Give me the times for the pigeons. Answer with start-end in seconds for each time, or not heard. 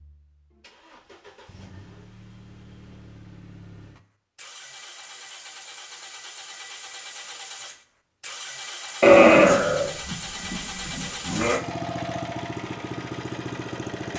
not heard.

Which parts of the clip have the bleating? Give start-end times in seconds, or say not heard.
9.0-11.6.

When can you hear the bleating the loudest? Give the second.
9 s.